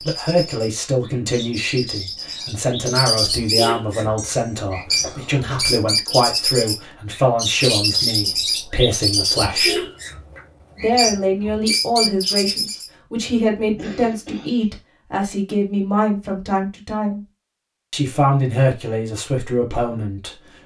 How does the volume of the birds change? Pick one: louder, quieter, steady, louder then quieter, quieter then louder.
louder.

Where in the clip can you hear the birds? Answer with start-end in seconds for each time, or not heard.
0.0-12.9.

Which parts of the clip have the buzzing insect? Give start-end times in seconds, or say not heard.
not heard.